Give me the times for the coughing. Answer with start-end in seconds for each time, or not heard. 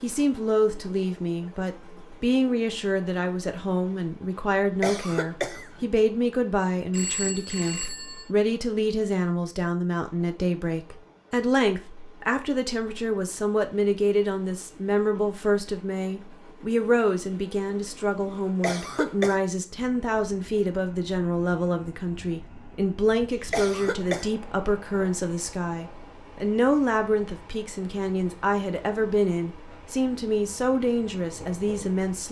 4.8-5.9, 18.6-19.4, 23.5-24.3.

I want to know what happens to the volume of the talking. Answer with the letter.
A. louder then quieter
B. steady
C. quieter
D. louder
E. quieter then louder
B.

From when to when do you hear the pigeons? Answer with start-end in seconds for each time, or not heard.
not heard.